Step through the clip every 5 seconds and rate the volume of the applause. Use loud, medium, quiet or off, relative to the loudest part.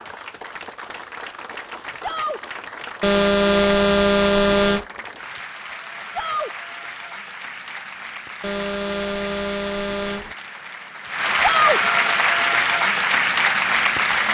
quiet, quiet, loud.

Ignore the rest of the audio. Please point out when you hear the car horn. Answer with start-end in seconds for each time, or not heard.
3.0-4.8, 8.4-10.3.